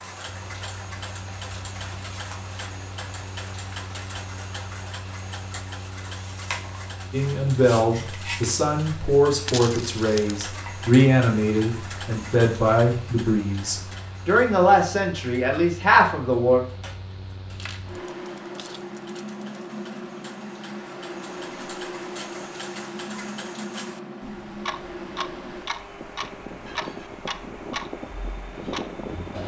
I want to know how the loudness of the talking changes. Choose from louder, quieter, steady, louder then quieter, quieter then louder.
steady.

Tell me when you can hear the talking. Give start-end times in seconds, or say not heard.
7.1-16.6.